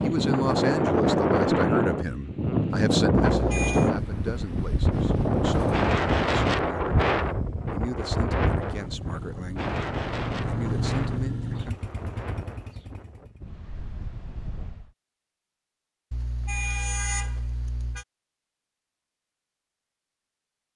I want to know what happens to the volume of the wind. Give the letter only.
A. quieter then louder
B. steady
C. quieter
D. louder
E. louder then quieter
C.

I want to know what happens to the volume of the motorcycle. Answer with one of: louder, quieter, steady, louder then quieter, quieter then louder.
louder then quieter.